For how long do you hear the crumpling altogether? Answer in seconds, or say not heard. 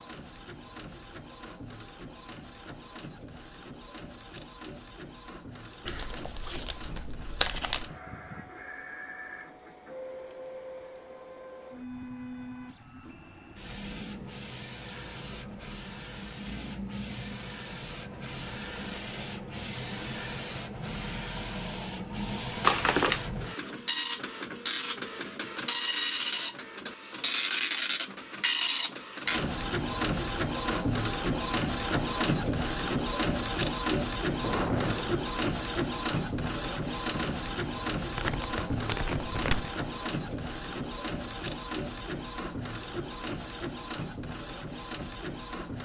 4 s.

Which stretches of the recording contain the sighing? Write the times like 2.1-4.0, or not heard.
34.4-35.2.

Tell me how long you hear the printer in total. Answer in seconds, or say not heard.
46 s.